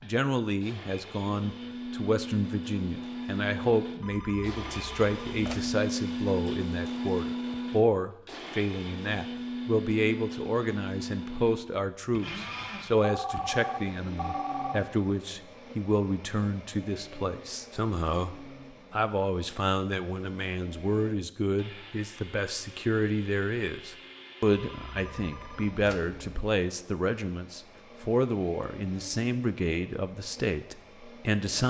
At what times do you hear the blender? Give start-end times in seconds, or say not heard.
0.0-31.6.